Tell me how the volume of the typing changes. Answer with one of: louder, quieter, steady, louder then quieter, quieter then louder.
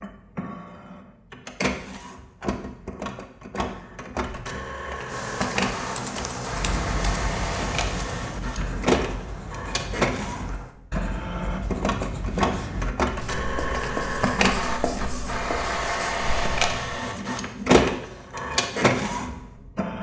quieter.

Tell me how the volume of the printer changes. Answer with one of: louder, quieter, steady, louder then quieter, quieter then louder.
louder.